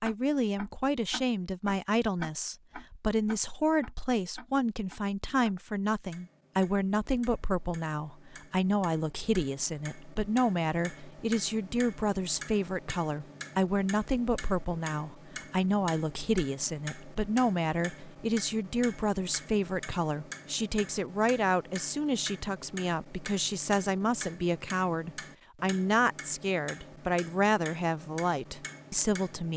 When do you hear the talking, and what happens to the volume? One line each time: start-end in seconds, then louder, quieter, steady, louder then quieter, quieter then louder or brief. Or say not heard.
0.0-29.5 steady.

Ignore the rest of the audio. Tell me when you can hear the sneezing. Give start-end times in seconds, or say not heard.
not heard.